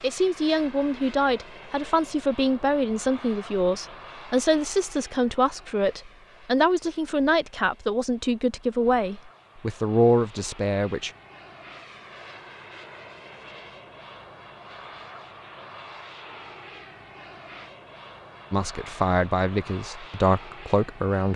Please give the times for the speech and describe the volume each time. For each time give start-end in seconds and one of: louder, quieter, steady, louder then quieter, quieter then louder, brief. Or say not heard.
0.0-11.1 steady
18.5-21.3 brief.